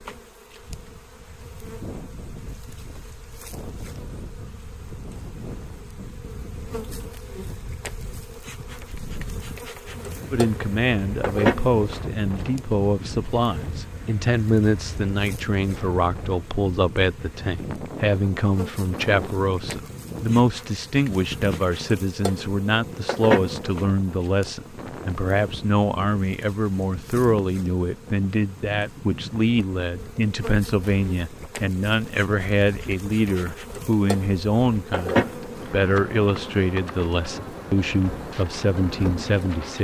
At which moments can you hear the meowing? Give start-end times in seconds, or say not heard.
not heard.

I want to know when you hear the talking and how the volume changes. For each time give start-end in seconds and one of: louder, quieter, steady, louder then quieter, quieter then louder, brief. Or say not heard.
10.3-39.7 steady.